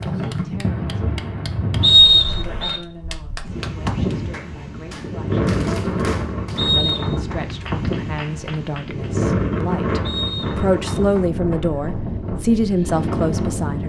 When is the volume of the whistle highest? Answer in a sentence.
The loudest moment of the whistle is at 2 seconds.